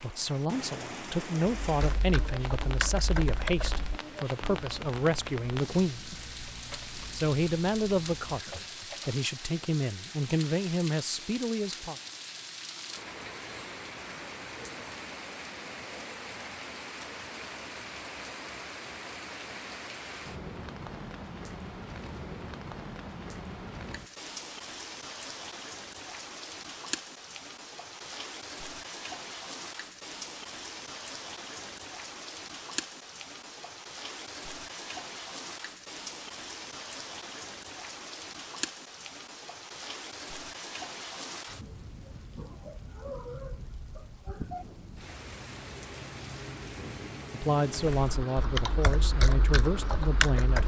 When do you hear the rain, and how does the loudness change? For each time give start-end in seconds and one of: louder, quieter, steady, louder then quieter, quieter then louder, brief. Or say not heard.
0.0-50.6 steady.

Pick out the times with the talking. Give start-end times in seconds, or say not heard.
0.0-6.2, 7.1-11.9, 47.3-50.6.